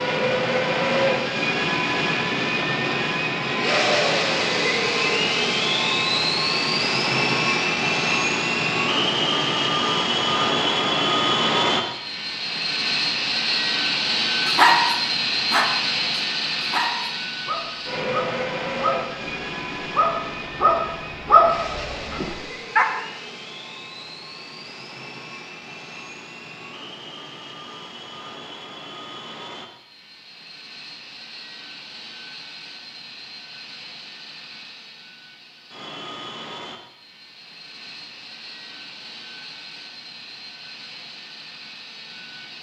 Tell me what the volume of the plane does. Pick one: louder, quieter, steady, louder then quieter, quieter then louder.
quieter.